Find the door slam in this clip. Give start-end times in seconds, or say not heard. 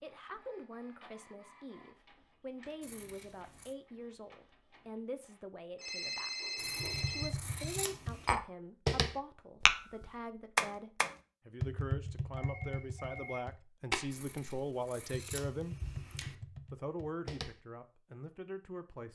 not heard.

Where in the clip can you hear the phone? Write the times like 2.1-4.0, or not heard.
5.8-7.3, 12.3-13.4.